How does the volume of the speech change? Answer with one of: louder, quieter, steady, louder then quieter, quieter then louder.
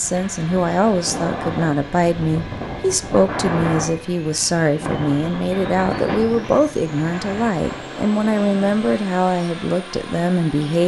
steady.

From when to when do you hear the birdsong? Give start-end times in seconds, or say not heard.
not heard.